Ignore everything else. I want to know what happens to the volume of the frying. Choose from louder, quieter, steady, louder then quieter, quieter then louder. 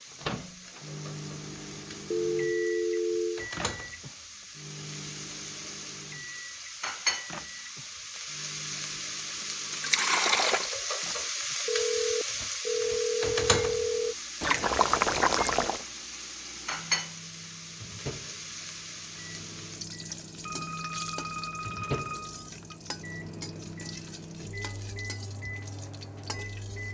louder then quieter.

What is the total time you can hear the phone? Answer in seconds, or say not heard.
6 s.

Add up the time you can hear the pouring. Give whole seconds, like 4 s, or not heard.
3 s.